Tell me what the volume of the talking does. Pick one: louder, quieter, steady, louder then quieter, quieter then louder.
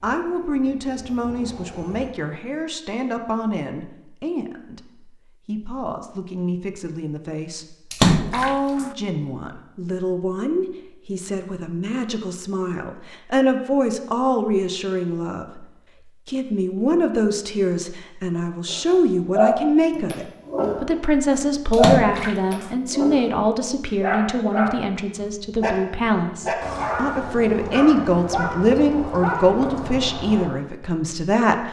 louder.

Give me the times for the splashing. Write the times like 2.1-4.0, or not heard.
7.9-8.9, 21.7-22.7.